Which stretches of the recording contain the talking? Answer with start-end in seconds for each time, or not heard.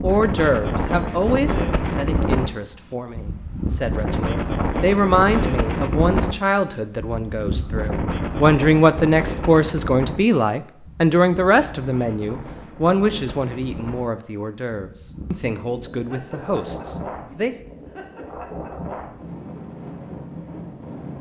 0.0-17.6.